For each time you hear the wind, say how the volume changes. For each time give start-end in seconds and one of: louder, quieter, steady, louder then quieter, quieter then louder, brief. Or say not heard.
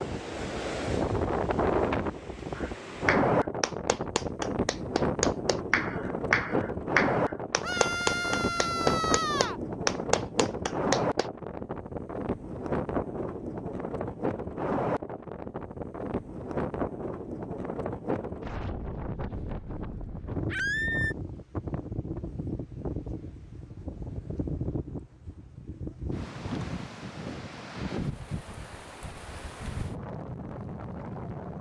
0.0-31.5 quieter.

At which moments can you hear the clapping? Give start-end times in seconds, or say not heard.
2.5-11.2.